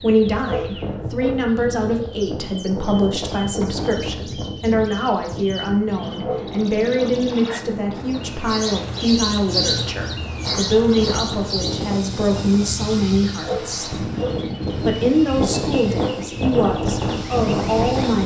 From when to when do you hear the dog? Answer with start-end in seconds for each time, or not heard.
0.5-1.6, 6.2-7.2, 13.4-14.5.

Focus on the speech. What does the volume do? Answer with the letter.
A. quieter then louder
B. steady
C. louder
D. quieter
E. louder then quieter
B.